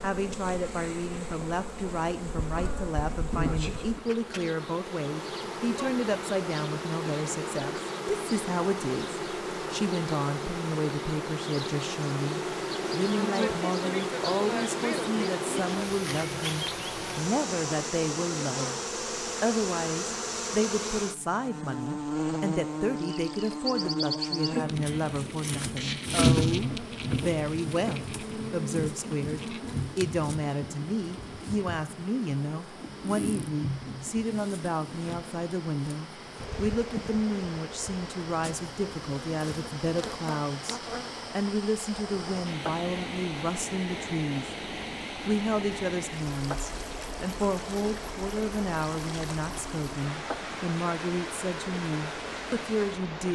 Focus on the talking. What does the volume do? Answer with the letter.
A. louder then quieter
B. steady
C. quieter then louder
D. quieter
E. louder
B.